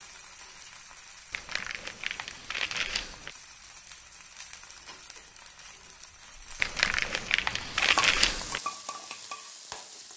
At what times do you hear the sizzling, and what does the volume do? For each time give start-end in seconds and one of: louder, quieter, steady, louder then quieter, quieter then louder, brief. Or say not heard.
0.0-10.1 louder.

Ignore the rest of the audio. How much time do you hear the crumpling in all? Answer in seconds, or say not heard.
4 s.